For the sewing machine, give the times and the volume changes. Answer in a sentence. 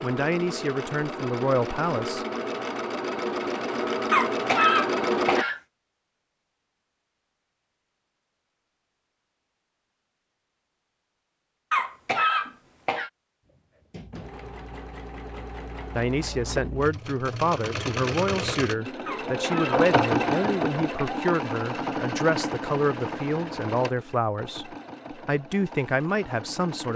You can hear the sewing machine from 0.0 to 5.5 s, getting louder; and from 13.4 to 26.9 s, getting louder then quieter.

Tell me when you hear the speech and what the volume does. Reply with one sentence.
The speech can be heard briefly from 0.0 to 2.2 s; and from 15.9 to 26.9 s, at a steady volume.